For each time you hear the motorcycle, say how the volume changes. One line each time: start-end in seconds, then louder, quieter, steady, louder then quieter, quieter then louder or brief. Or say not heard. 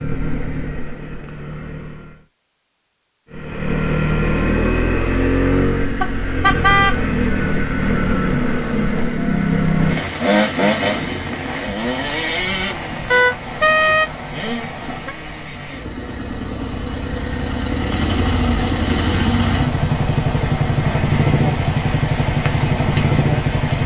0.0-2.2 brief
3.3-23.8 quieter then louder.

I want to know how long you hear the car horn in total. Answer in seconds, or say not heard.
3 s.